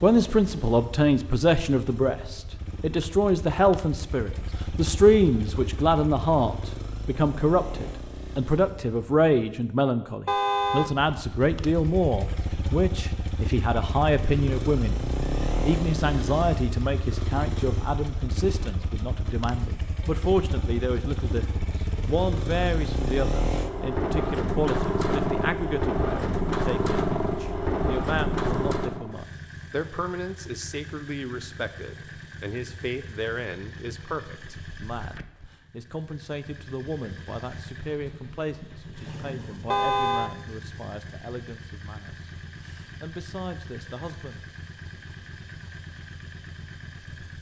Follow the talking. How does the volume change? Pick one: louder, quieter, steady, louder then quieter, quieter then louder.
quieter.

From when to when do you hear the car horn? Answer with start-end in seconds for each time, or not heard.
10.2-10.9, 39.7-40.3.